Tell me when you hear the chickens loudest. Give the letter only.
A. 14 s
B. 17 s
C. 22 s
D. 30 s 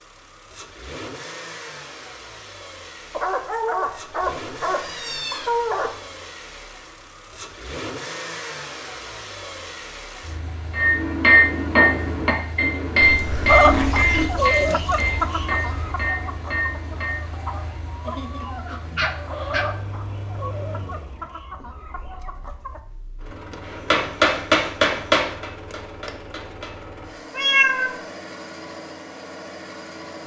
A.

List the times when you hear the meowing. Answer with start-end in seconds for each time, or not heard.
4.7-6.2, 13.0-14.3, 27.4-27.9.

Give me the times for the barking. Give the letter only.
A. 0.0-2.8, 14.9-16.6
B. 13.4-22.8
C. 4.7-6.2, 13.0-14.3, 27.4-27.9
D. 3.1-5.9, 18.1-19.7
D.